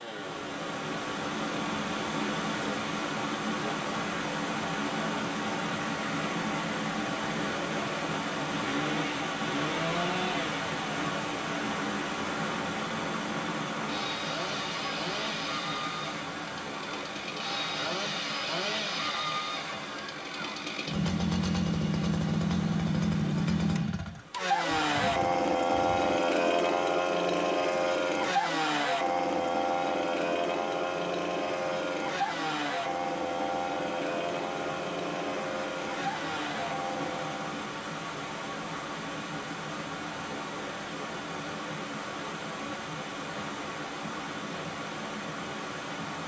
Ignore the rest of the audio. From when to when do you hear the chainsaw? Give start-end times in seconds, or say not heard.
0.0-37.5.